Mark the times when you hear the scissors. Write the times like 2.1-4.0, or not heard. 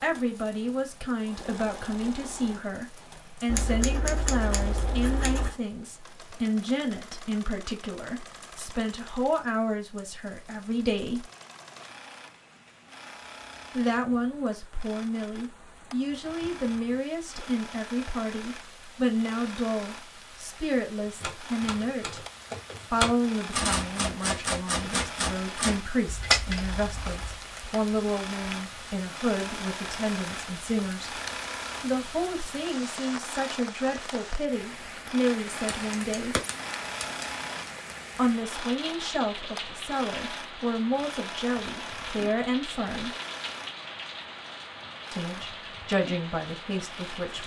3.5-5.5, 26.1-27.4, 35.5-37.7.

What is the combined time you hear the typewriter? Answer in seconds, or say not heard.
5 s.